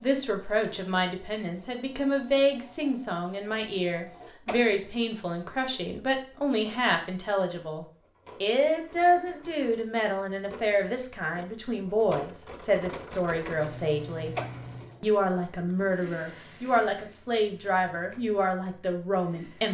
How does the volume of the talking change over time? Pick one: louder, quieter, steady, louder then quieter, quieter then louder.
steady.